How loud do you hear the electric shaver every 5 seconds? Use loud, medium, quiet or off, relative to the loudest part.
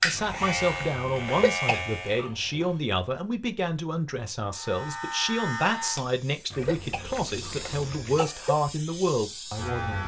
loud, medium.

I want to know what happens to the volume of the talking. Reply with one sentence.
The loudness of the talking stays about the same.